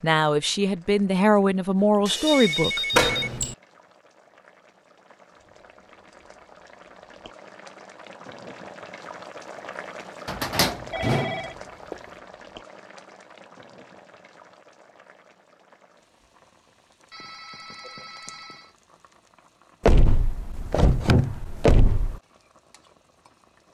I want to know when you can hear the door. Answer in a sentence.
The door can be heard from 2.9 to 3.5 s, from 10.2 to 11.9 s and from 19.9 to 22.1 s.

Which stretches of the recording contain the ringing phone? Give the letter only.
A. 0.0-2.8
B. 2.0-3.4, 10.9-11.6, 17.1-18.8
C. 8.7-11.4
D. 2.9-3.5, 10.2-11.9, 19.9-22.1
B.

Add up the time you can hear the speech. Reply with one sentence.
You can hear the speech for 3 seconds altogether.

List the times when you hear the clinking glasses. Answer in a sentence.
The clinking glasses can't be heard in this clip.